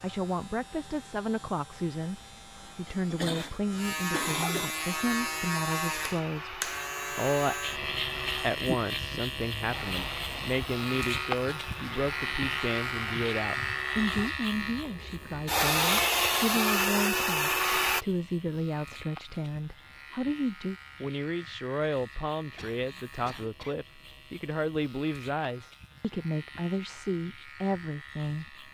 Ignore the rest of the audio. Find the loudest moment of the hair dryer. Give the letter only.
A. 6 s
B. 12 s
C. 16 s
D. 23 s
C.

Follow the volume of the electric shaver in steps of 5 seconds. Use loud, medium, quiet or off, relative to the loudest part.
medium, loud, loud, quiet, quiet, quiet.